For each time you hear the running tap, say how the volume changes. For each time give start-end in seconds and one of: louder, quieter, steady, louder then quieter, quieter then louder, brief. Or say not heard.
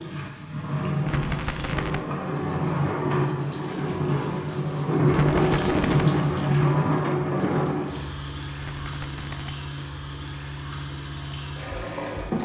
0.0-12.3 louder then quieter.